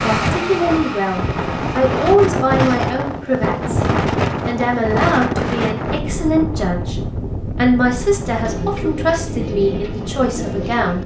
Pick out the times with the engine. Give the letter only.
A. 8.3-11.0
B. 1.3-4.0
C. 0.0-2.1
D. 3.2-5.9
C.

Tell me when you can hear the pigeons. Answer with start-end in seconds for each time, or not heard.
8.3-11.0.